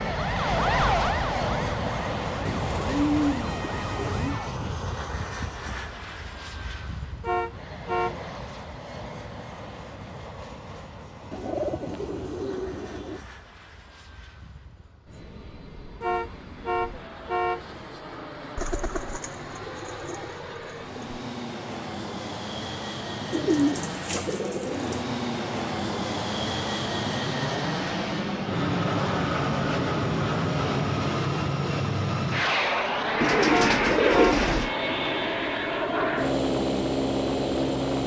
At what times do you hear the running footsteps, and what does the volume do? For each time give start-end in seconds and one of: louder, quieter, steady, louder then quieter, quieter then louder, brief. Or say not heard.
not heard.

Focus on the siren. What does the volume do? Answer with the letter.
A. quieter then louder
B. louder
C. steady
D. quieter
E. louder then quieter
D.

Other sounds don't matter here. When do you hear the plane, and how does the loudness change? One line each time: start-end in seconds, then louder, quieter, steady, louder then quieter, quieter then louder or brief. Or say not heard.
0.0-38.0 quieter then louder.